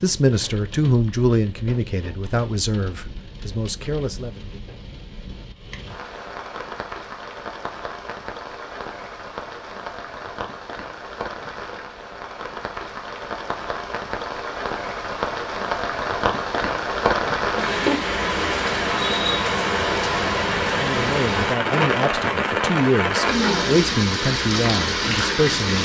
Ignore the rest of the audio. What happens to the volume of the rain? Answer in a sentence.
The volume of the rain goes up.